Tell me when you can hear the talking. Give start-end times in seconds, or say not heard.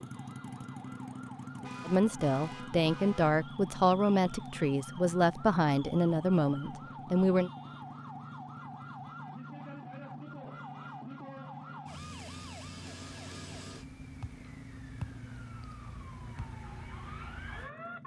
1.9-7.5.